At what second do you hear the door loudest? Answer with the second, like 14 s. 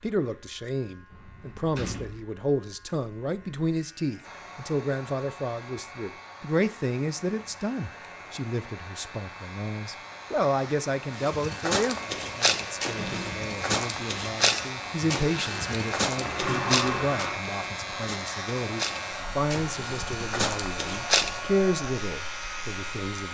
17 s.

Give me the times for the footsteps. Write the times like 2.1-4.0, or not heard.
11.2-21.4.